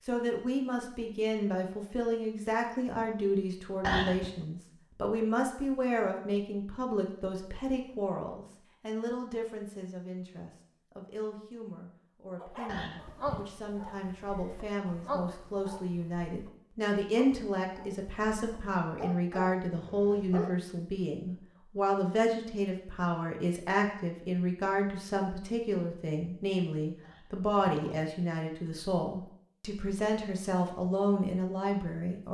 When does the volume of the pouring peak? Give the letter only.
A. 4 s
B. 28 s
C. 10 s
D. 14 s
A.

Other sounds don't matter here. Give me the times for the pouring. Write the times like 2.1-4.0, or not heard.
3.8-4.5, 12.7-13.4, 27.0-28.0.